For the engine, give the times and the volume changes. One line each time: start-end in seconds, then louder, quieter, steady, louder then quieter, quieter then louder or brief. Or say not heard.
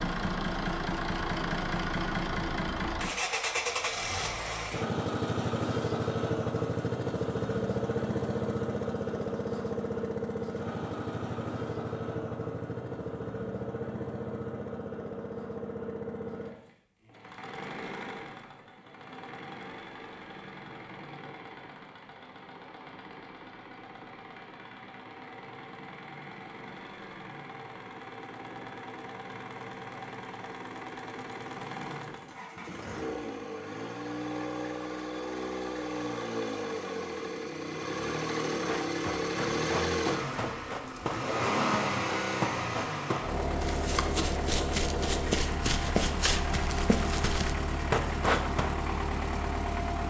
0.0-50.0 quieter then louder.